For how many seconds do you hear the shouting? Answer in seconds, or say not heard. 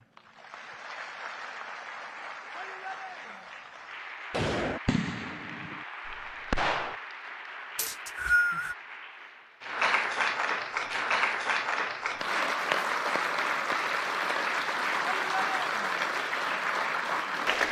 2 s.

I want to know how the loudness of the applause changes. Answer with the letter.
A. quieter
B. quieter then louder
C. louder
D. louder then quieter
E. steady
C.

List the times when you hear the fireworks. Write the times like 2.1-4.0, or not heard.
4.3-7.0.